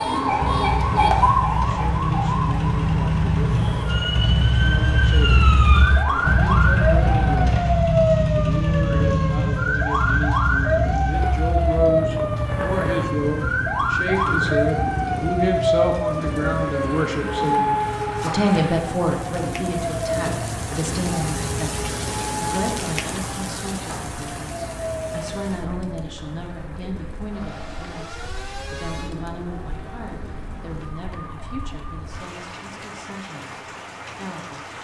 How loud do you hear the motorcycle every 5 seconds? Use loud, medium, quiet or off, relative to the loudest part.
loud, loud, medium, medium, medium, off, off.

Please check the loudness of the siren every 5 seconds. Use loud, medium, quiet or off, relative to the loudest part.
loud, loud, loud, loud, medium, quiet, quiet.